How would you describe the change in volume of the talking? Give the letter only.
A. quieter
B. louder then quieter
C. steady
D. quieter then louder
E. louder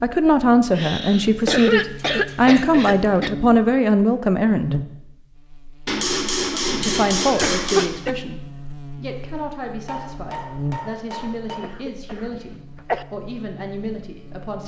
A.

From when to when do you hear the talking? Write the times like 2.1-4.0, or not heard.
0.0-4.8, 6.8-14.6.